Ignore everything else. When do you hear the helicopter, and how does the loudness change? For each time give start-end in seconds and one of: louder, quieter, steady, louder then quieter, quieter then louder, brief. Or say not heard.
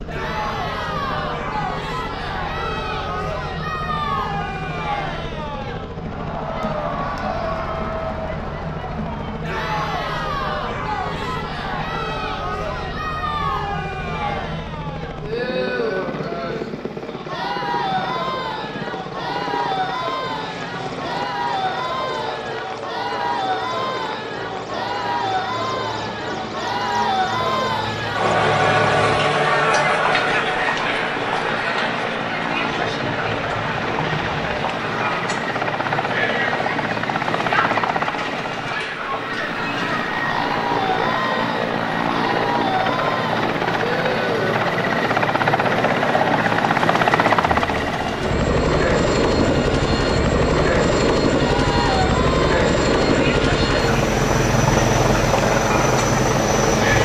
0.0-57.0 louder.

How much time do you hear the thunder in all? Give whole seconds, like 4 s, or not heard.
2 s.